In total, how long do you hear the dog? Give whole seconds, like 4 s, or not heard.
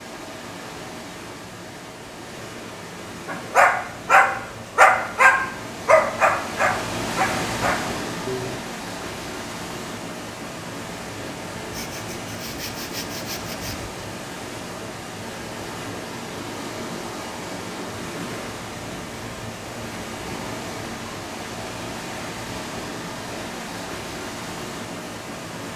5 s.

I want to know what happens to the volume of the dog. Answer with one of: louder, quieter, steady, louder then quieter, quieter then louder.
quieter.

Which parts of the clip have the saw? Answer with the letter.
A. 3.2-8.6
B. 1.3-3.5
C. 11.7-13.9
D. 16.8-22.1
C.